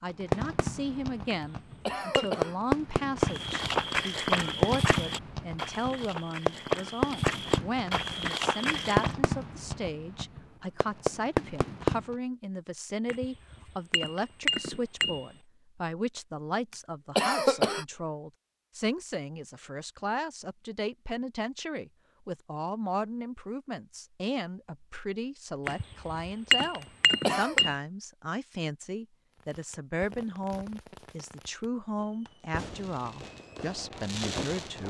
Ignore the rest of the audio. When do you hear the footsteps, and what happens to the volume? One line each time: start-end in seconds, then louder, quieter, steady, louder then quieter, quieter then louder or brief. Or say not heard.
3.2-9.2 quieter then louder.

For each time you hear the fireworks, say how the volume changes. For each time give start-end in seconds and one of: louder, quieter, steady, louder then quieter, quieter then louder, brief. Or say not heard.
0.2-12.2 steady
29.4-34.8 quieter then louder.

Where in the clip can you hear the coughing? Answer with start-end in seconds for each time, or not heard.
1.9-2.5, 17.1-17.9, 26.8-27.6.